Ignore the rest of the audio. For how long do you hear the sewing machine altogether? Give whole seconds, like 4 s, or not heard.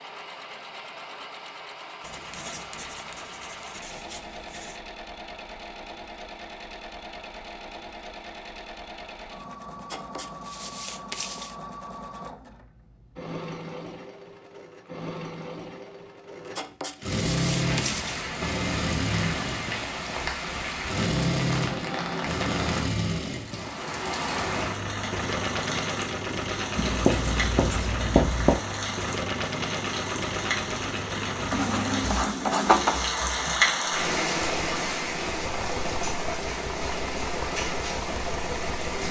39 s.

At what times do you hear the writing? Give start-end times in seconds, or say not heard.
2.0-4.8, 9.9-11.6, 16.6-18.3, 26.8-28.6, 31.5-33.0.